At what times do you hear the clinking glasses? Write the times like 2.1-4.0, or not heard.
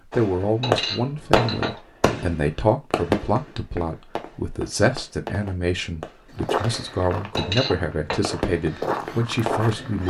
0.6-1.8, 7.3-8.2.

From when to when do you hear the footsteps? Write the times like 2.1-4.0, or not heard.
6.3-10.0.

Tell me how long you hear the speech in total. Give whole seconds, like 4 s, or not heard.
10 s.